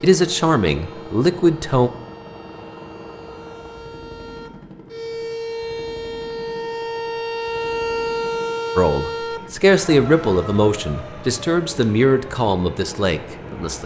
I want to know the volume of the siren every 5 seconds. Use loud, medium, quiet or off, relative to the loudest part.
quiet, loud, medium.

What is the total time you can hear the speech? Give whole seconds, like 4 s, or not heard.
7 s.